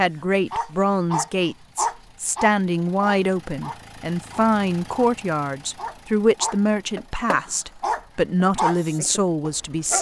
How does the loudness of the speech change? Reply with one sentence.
The volume of the speech stays about the same.